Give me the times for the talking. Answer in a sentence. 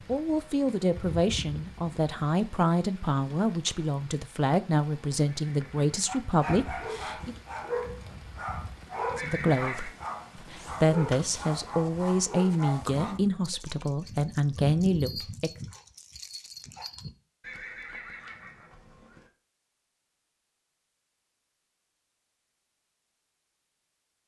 You can hear the talking from 0.1 to 7.3 s and from 9.2 to 15.5 s.